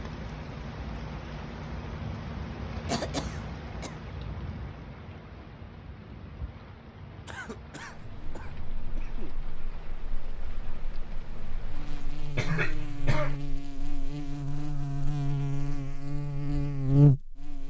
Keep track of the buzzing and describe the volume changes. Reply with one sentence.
The volume of the buzzing goes up.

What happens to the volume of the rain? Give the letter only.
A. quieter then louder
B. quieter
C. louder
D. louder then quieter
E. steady
B.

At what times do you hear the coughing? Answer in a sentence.
The coughing can be heard from 2.9 to 4.0 s, from 7.2 to 9.4 s and from 12.3 to 13.4 s.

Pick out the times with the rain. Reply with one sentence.
The rain can be heard from 0.0 to 12.5 s.